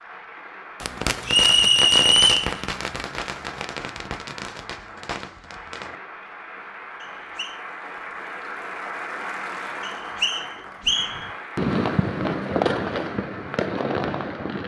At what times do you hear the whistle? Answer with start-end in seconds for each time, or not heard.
1.2-2.5, 7.0-7.5, 9.8-11.2.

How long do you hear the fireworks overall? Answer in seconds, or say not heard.
9 s.